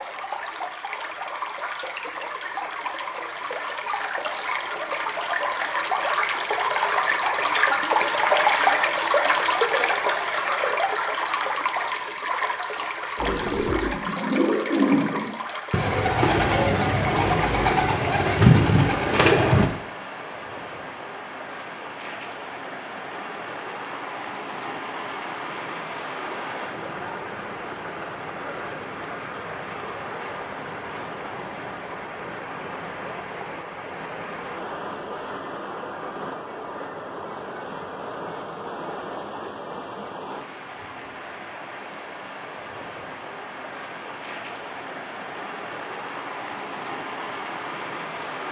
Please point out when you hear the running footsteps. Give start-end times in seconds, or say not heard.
not heard.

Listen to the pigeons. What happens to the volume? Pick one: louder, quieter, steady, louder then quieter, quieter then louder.
louder.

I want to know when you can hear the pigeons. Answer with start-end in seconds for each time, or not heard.
13.2-19.7.